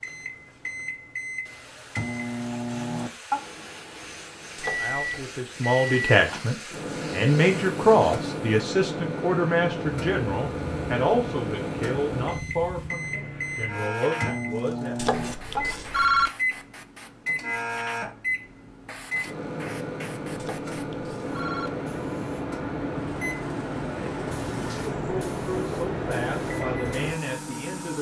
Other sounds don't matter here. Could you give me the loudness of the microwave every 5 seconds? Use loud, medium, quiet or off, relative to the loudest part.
loud, loud, loud, loud, loud, medium.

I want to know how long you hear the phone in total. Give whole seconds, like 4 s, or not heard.
3 s.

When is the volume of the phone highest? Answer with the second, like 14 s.
16 s.